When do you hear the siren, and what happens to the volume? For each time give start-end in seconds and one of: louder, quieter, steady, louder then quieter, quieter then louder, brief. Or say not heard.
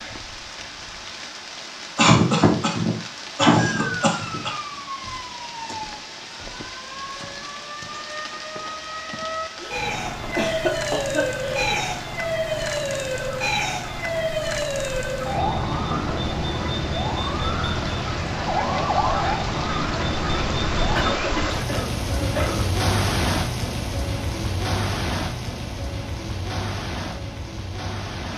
3.5-21.1 louder.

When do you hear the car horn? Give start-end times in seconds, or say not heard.
not heard.